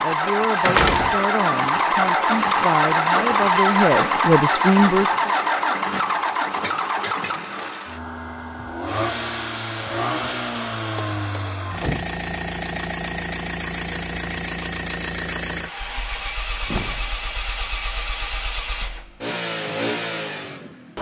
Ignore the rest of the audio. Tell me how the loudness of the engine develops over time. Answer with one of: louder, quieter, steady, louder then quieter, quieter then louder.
quieter.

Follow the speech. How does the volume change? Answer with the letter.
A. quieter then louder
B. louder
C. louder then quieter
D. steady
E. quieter
B.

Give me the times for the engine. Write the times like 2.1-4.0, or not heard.
0.0-20.9.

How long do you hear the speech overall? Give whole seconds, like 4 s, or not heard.
5 s.